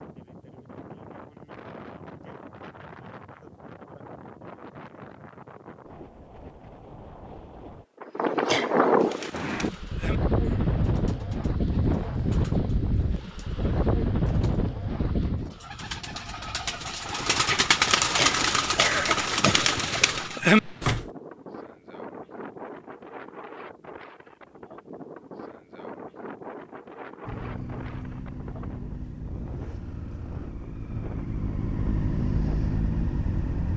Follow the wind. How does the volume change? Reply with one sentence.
The volume of the wind goes up, then down.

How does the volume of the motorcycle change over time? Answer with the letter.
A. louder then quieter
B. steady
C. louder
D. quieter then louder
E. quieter
C.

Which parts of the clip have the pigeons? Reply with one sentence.
You can hear the pigeons from 9.0 to 21.1 s.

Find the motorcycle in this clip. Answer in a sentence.
You can hear the motorcycle from 27.2 to 33.7 s.